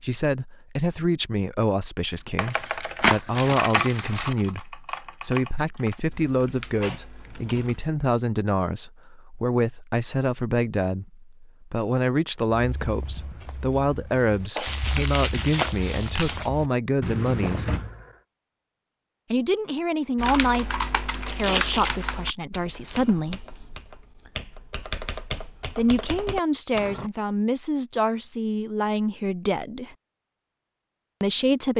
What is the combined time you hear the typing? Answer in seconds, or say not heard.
13 s.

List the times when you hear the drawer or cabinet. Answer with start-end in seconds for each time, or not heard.
6.8-7.7, 17.6-18.1.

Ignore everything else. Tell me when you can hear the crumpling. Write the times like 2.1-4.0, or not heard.
2.5-4.3, 14.6-16.5, 21.2-22.0.